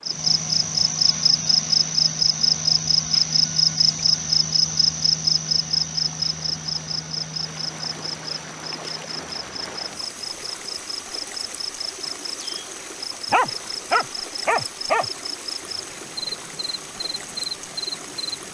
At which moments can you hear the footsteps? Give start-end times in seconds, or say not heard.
not heard.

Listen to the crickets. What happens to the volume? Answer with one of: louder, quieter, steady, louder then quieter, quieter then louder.
quieter.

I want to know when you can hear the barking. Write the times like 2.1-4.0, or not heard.
13.3-15.1.